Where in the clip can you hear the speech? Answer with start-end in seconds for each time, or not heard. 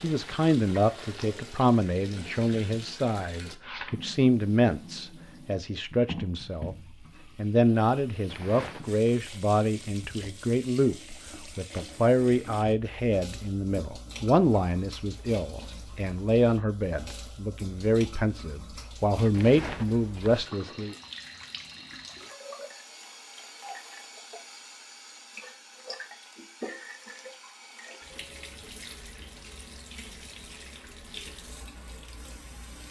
0.0-6.8, 7.3-20.9.